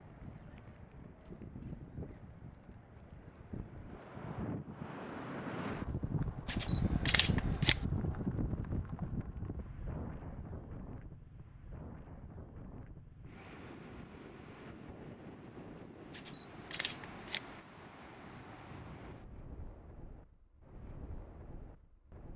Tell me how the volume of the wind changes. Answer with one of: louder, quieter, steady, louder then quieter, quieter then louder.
louder then quieter.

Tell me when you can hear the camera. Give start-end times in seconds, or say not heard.
6.5-7.8, 16.1-17.5.